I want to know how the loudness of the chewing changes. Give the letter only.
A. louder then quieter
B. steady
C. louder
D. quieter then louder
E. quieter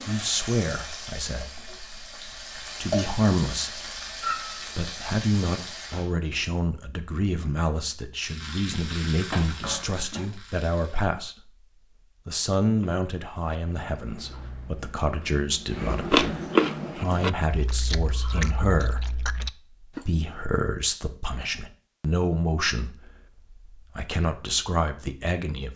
A.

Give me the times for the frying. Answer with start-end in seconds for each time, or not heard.
0.0-6.1, 8.2-11.1.